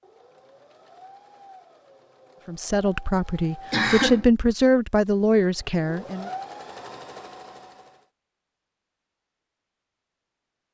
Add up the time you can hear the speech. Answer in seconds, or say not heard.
4 s.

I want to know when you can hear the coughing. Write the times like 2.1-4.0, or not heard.
3.7-4.2.